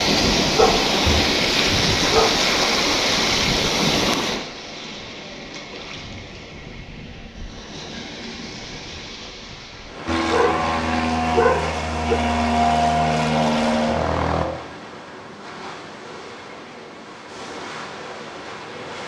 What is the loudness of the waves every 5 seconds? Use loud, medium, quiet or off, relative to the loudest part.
loud, quiet, quiet, quiet.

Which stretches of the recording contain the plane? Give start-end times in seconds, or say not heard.
10.1-14.4.